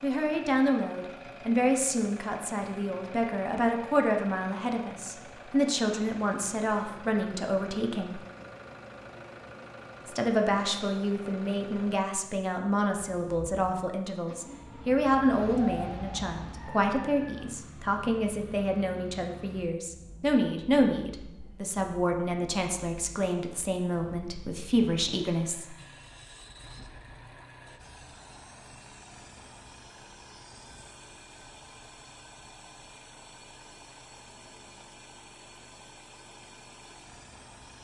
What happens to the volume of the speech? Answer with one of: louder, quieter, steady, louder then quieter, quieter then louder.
steady.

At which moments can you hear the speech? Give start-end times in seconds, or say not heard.
0.0-8.2, 10.1-25.8.